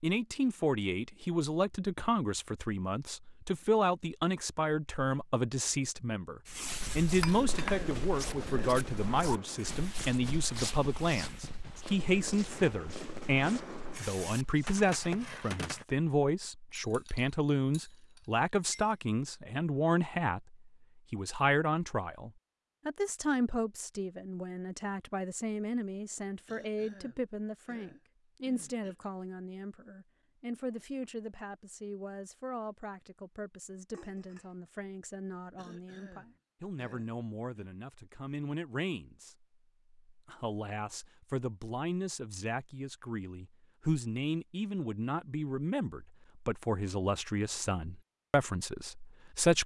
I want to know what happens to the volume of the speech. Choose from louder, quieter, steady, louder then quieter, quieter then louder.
quieter then louder.